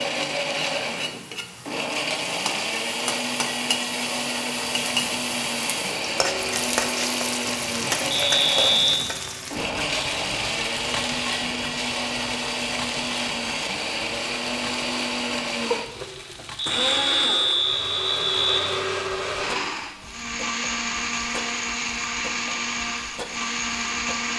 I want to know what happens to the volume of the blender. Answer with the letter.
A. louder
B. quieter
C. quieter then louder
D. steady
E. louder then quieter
D.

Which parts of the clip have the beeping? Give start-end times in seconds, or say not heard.
8.2-9.0, 16.6-18.6.